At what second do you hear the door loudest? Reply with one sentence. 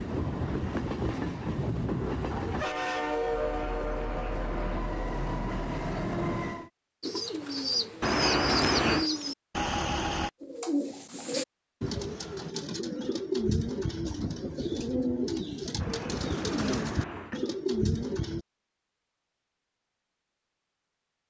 The volume of the door peaks at 9 seconds.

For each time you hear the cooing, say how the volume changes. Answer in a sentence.
You can hear the cooing from 7.0 to 18.4 s, at a steady volume.